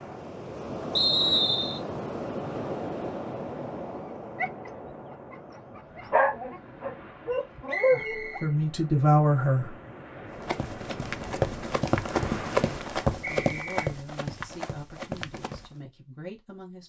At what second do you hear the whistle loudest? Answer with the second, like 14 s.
1 s.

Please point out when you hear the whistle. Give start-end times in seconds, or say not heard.
0.9-1.8, 7.7-8.5, 13.2-13.9.